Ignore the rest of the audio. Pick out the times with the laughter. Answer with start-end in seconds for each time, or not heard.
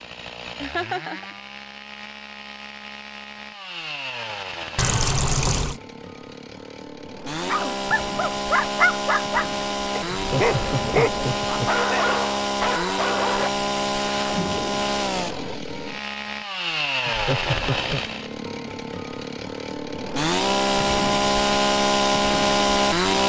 0.6-1.2, 10.1-11.8, 17.1-18.1.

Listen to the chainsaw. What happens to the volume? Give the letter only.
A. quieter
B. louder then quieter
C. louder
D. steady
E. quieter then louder
C.